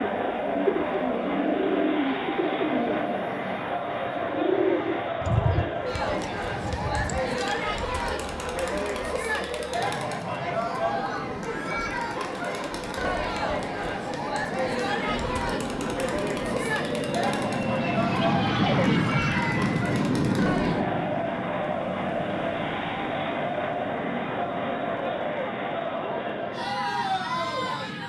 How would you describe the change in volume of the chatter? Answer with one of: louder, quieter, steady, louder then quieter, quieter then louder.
steady.